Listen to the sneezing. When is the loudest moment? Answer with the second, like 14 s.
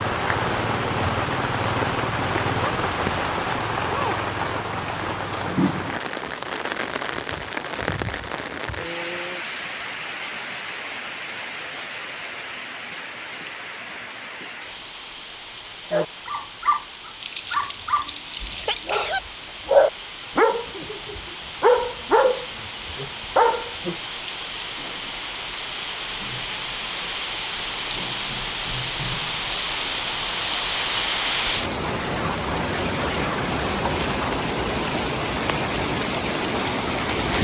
19 s.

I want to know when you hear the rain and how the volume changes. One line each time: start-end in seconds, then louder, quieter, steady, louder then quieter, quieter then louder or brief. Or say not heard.
0.0-37.3 quieter then louder.